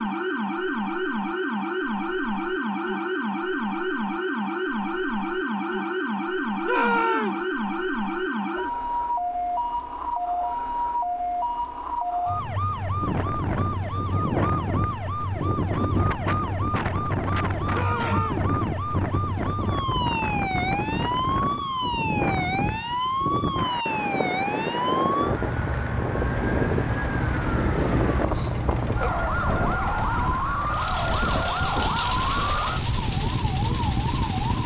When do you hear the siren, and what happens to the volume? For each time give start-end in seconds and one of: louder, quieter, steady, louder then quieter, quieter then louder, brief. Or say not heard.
0.0-34.6 steady.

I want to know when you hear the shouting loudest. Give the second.
7 s.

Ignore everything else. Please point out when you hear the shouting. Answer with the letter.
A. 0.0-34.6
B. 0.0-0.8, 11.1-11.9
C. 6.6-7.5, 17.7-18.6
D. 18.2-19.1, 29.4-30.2
C.